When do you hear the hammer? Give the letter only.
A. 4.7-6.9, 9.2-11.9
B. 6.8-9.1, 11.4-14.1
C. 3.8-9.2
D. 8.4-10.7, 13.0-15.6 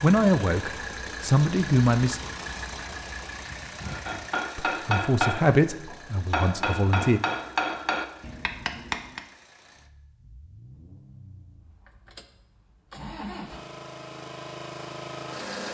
C.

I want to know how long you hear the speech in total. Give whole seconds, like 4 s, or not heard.
5 s.